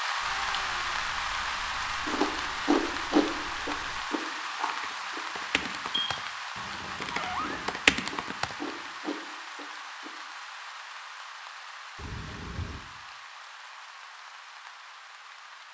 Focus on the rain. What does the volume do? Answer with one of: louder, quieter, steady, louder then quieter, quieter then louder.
quieter.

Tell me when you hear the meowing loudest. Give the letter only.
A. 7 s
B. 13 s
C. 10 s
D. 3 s
A.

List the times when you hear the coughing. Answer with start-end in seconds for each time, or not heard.
not heard.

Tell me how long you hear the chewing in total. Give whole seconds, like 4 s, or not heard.
8 s.